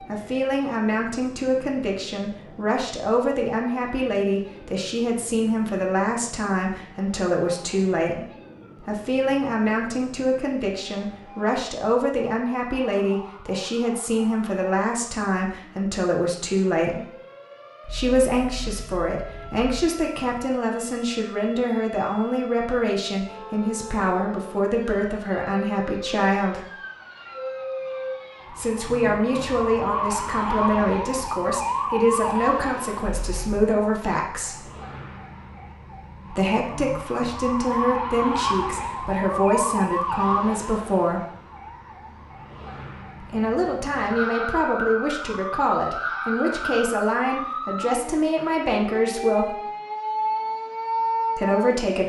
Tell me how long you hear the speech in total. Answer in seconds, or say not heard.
44 s.